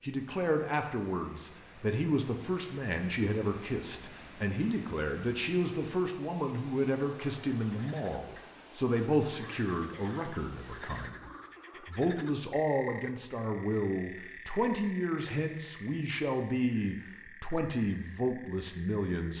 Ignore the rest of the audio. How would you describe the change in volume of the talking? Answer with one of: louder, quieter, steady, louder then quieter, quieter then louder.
steady.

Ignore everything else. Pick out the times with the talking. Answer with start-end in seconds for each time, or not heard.
0.0-19.3.